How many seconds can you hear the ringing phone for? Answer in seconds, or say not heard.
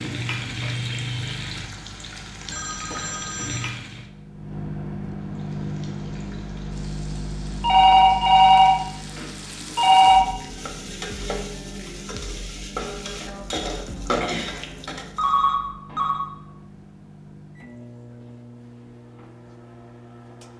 5 s.